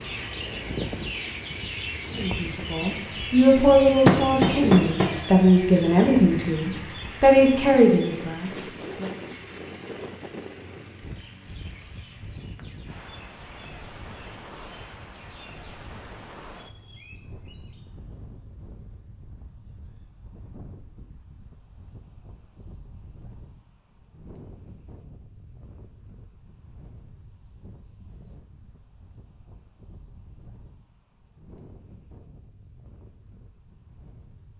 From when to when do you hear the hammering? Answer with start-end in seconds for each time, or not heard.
3.5-5.2.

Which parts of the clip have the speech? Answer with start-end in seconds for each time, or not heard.
2.1-9.1.